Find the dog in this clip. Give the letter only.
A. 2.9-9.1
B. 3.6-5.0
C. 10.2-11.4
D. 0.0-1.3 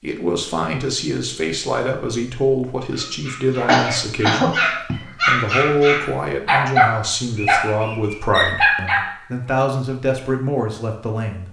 A.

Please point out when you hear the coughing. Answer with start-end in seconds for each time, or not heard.
3.6-5.0.